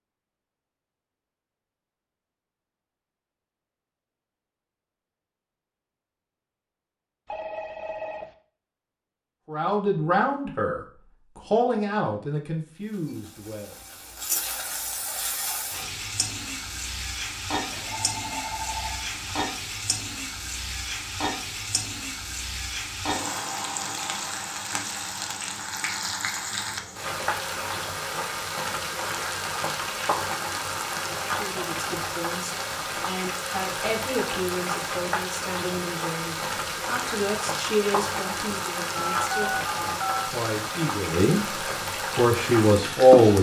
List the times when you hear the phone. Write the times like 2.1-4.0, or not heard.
7.2-8.2, 17.7-19.4, 39.0-40.3.